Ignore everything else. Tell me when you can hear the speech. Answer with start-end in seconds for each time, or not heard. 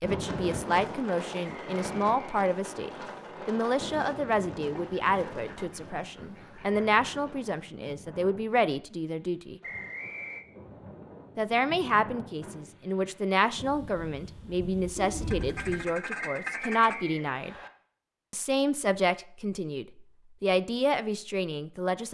0.0-9.6, 11.3-17.6, 18.3-22.0.